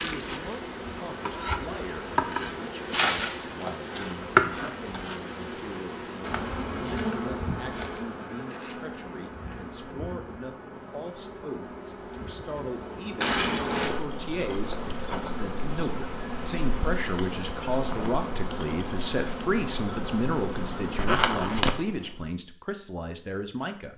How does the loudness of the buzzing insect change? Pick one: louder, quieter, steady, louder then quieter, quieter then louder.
quieter then louder.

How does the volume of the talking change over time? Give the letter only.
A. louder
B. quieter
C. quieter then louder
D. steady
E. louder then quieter
A.